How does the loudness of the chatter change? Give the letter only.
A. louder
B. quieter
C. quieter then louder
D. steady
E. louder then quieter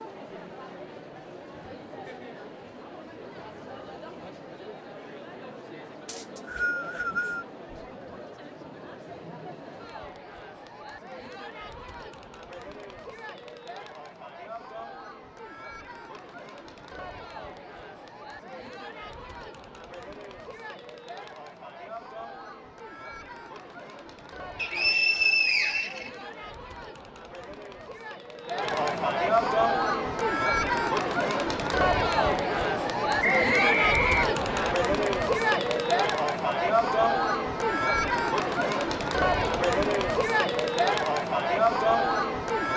A.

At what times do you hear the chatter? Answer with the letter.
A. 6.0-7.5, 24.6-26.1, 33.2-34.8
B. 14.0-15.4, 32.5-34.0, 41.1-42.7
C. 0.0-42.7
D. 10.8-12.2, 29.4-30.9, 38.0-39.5
C.